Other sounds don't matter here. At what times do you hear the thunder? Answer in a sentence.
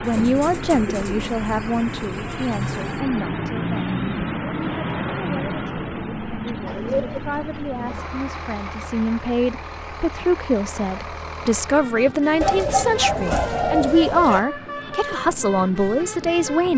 You can't hear the thunder here.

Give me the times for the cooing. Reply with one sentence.
You can hear the cooing from 0.0 to 3.0 s, from 6.7 to 8.1 s and from 12.4 to 14.4 s.